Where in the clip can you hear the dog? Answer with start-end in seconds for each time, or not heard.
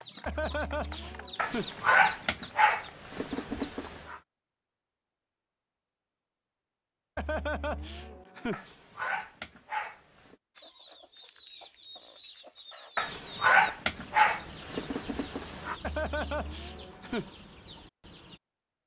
1.4-4.2, 8.5-10.3, 12.9-15.8.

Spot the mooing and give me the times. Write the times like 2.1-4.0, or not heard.
0.2-1.7, 7.2-8.7, 15.8-17.3.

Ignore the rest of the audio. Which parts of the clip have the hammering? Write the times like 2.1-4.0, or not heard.
not heard.